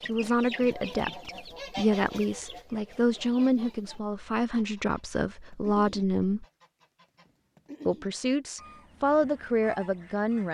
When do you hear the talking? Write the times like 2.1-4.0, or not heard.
0.1-6.5, 7.8-10.4.